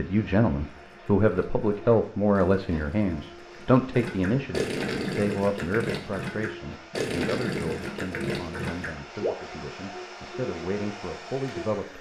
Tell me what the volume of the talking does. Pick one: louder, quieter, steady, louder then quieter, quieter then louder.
quieter.